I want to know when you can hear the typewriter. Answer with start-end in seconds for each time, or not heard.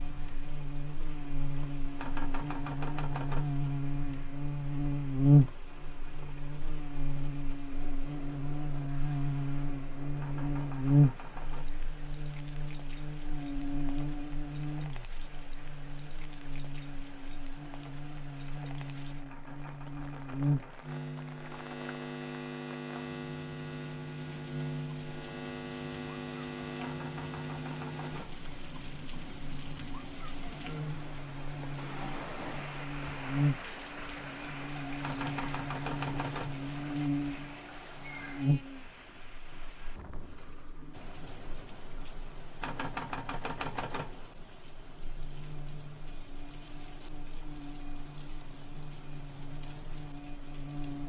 1.9-3.5, 10.2-11.7, 19.2-20.8, 26.8-28.4, 35.0-36.5, 42.6-44.1.